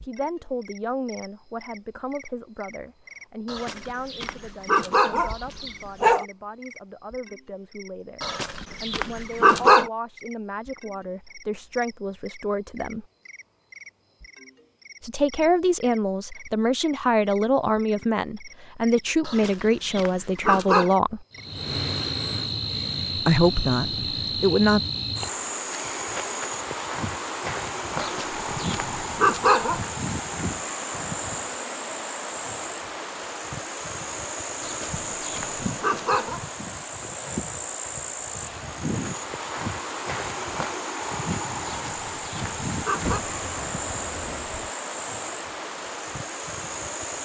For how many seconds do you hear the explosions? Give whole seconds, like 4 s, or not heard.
2 s.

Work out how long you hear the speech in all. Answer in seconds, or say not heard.
21 s.